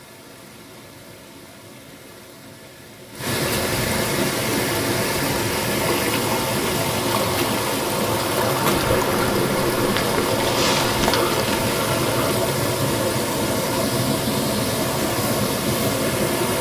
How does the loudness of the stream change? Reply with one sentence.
The loudness of the stream goes up.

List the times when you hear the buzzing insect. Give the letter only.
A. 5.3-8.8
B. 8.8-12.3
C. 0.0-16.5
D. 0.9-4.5
B.